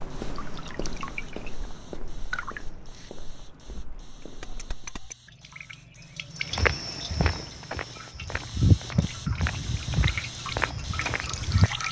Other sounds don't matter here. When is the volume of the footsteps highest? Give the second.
9 s.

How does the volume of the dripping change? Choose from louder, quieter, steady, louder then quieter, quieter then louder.
quieter then louder.